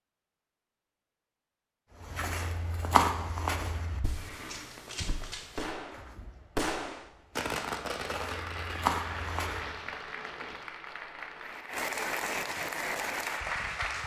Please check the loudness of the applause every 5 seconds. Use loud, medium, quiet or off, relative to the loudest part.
off, medium, loud.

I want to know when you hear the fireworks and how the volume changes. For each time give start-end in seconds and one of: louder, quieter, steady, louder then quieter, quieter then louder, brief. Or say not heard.
4.2-10.6 louder then quieter.